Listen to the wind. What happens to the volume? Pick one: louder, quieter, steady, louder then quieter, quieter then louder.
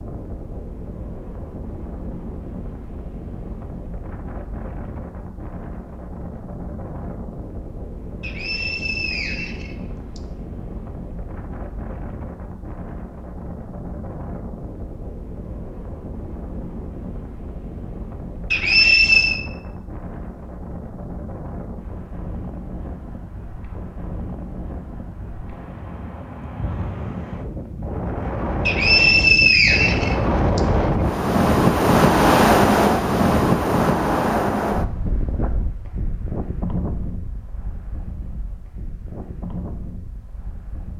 louder.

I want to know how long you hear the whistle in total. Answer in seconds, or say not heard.
5 s.